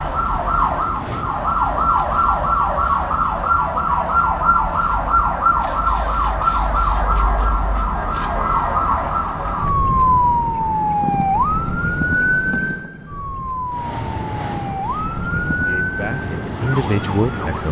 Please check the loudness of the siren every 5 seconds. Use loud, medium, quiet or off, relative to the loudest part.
loud, loud, loud, medium.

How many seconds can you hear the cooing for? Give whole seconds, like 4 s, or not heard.
not heard.